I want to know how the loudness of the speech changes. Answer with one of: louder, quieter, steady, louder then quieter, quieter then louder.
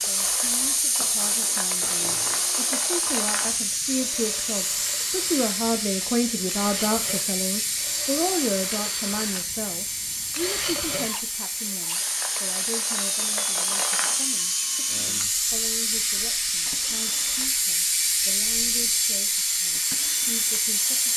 louder then quieter.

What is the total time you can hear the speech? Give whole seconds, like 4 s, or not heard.
21 s.